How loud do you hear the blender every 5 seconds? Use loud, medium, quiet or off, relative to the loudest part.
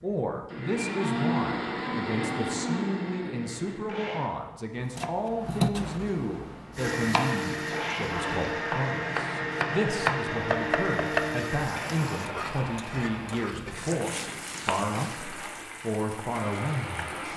loud, loud, loud, medium.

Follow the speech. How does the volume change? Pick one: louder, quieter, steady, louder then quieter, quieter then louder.
steady.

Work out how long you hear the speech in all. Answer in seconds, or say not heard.
17 s.